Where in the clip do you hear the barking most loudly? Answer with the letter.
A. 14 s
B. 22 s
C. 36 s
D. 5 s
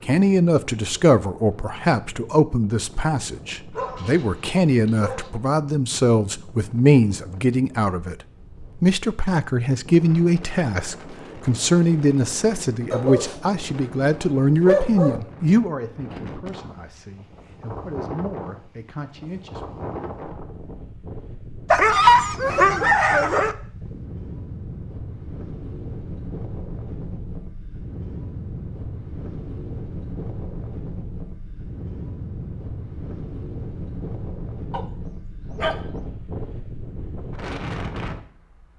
B.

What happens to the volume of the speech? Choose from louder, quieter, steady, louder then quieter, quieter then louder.
quieter.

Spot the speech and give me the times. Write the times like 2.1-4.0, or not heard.
0.0-8.2, 8.8-19.9.